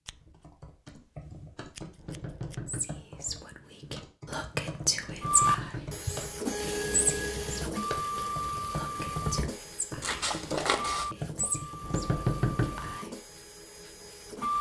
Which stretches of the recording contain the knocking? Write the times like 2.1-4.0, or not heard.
1.9-2.9, 5.0-6.0, 11.8-12.9.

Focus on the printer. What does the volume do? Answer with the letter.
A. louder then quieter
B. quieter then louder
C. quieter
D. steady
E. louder
C.